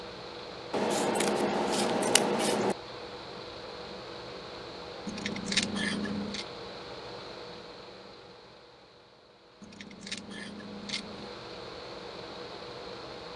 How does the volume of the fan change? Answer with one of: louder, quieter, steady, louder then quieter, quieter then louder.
quieter then louder.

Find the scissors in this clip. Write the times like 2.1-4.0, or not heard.
0.7-2.8, 5.0-6.5, 9.6-11.3.